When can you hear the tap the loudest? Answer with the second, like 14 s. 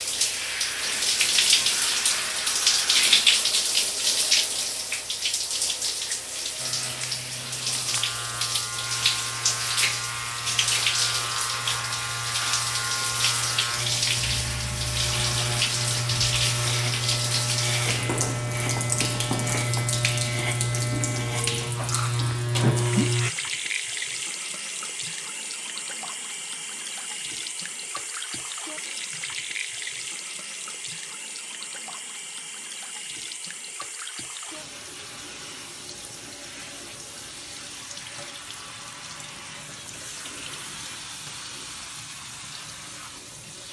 3 s.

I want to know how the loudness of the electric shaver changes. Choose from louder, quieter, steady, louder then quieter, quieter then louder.
louder.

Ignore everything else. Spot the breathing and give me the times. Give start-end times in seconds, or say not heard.
not heard.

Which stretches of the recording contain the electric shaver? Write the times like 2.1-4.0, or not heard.
6.5-23.3.